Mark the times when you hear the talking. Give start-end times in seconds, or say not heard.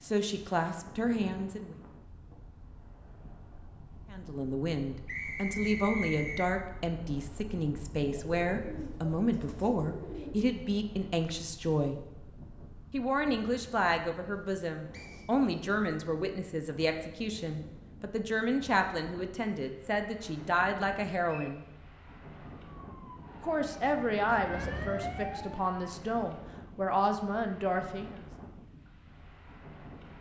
0.0-1.8, 4.1-12.0, 12.9-21.6, 23.4-28.2.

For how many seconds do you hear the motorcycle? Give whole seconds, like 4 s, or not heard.
not heard.